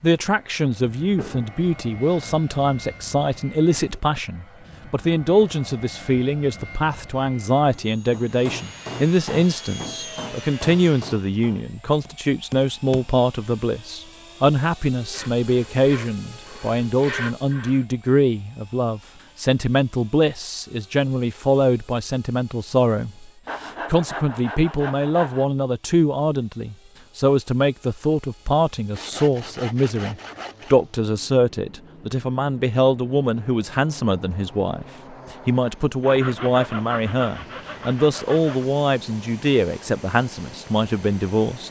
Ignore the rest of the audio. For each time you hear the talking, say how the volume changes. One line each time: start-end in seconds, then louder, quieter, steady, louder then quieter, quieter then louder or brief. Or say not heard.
0.0-41.6 steady.